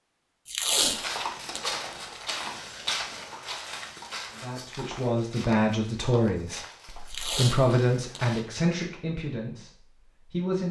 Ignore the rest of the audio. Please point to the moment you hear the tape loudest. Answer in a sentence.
The loudest moment of the tape is at 1 second.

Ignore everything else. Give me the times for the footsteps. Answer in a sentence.
The footsteps can be heard from 0.8 to 8.4 s.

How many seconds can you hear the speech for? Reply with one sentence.
The speech can be heard for 6 seconds in total.